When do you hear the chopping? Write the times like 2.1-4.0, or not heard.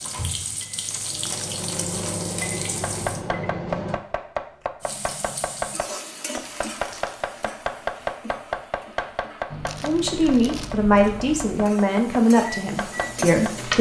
2.6-13.6.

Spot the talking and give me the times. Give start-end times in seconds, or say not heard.
9.8-13.7.